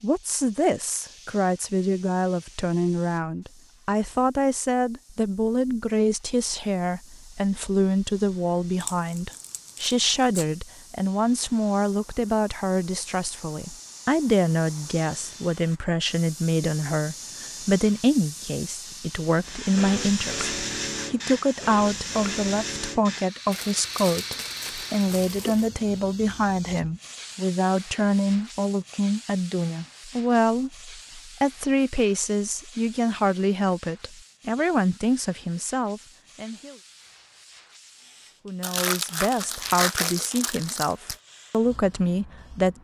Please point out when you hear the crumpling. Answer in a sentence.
You can hear the crumpling from 8.8 to 10.4 s, from 23.5 to 25.7 s and from 38.6 to 41.1 s.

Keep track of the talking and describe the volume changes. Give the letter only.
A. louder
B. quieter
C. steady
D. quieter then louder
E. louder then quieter
C.